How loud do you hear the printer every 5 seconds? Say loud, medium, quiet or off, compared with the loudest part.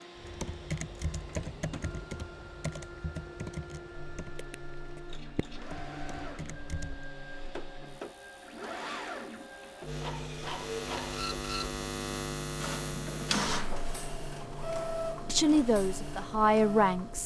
medium, medium, loud, loud.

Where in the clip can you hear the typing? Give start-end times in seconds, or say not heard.
0.1-7.0.